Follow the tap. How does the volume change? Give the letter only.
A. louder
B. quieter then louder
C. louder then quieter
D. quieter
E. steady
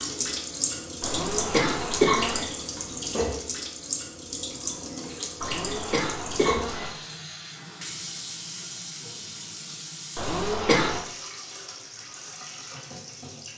D.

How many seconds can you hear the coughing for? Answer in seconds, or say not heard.
4 s.